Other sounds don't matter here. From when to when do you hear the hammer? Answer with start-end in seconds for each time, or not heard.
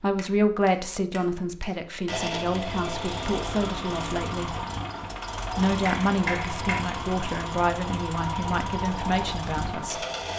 0.1-2.6, 5.7-6.8.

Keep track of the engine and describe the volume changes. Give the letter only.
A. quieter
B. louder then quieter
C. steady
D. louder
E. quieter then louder
C.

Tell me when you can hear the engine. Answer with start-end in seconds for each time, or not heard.
2.0-10.3.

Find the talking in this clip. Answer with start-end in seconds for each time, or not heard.
0.0-4.7, 5.5-10.0.